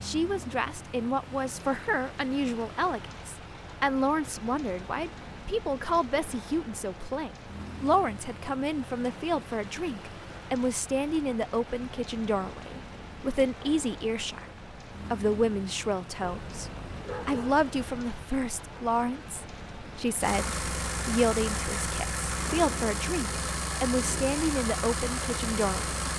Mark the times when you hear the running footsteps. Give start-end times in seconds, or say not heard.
not heard.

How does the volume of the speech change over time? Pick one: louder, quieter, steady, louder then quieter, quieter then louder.
steady.